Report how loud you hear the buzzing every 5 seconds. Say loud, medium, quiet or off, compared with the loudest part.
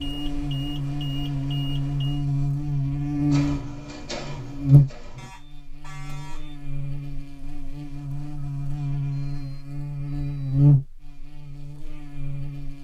loud, medium, loud.